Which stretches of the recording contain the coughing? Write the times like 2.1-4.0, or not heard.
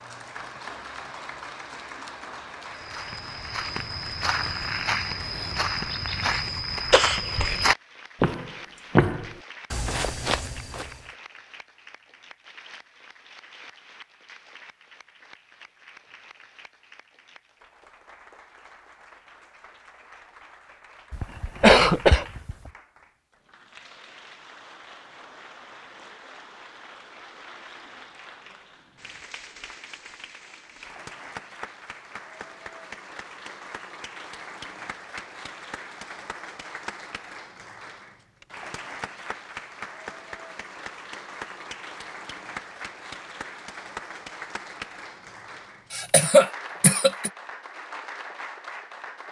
6.9-7.5, 21.1-22.6, 45.9-47.3.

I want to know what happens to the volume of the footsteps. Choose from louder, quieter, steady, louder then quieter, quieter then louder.
louder then quieter.